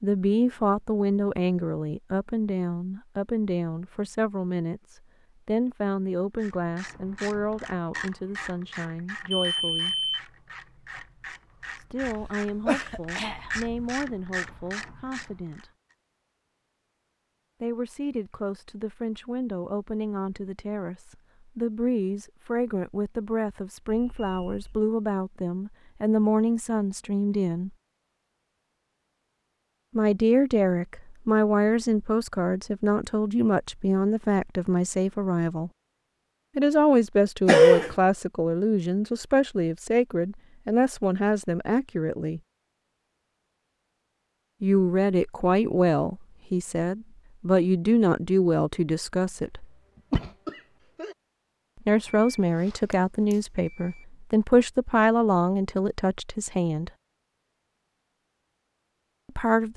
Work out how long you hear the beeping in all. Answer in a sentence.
You can hear the beeping for 4 seconds altogether.